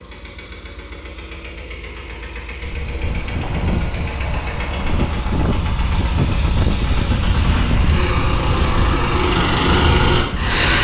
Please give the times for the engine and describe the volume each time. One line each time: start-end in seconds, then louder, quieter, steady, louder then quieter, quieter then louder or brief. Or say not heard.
0.0-10.7 louder.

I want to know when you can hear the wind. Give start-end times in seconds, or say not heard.
2.6-10.7.